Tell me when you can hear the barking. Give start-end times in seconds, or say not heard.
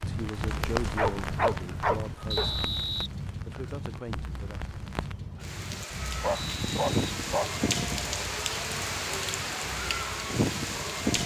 0.9-2.8, 6.1-7.5.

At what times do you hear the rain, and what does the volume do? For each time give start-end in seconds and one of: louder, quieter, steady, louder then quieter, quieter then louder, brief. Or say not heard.
0.0-11.2 quieter then louder.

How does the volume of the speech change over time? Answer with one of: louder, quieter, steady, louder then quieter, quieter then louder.
quieter then louder.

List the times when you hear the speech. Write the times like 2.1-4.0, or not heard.
0.1-4.6.